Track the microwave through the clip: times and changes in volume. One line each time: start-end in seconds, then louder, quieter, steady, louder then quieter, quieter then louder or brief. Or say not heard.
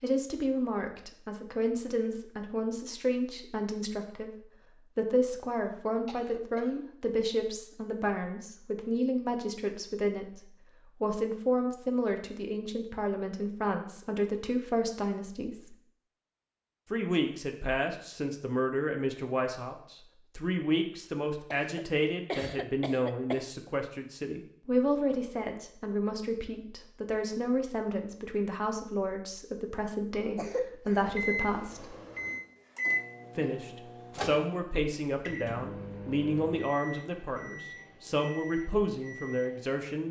31.0-39.8 quieter.